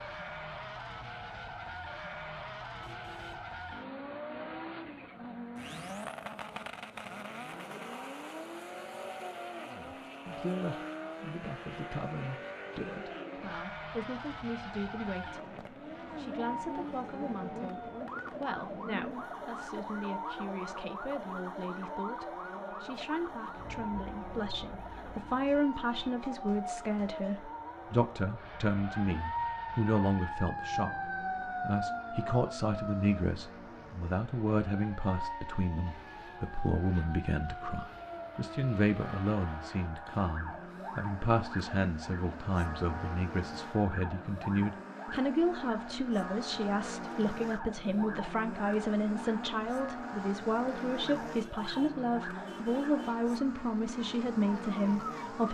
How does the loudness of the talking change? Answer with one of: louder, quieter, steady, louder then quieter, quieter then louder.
louder.